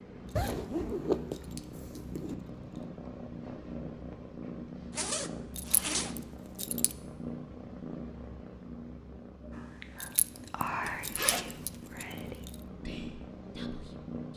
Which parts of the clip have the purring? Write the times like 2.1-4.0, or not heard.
0.0-14.3.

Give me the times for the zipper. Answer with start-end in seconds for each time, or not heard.
0.3-2.4, 4.9-6.2, 10.8-11.8.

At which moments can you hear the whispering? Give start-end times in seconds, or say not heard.
9.5-14.3.